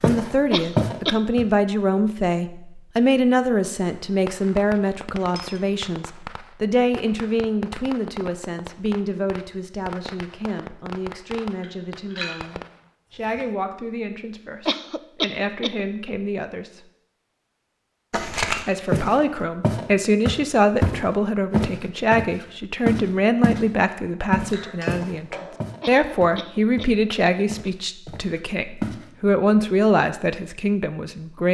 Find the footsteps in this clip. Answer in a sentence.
You can hear the footsteps from 0.0 to 1.5 s, from 18.1 to 23.6 s and from 24.3 to 29.0 s.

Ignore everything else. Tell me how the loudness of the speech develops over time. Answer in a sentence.
The loudness of the speech goes down, then up.